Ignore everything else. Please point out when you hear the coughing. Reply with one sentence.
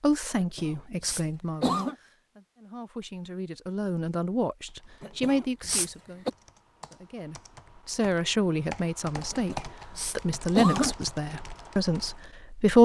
You can hear the coughing from 0.3 to 1.9 s, from 5.0 to 6.3 s and from 9.3 to 10.9 s.